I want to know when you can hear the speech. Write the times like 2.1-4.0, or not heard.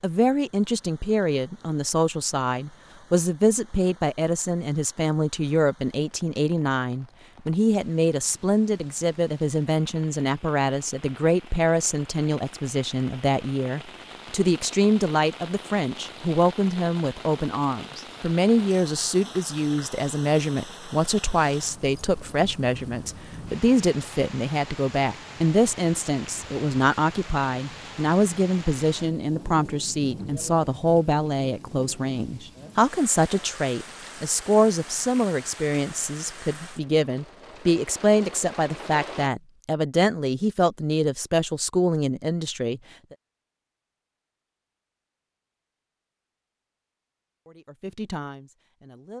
0.0-43.1, 47.5-49.1.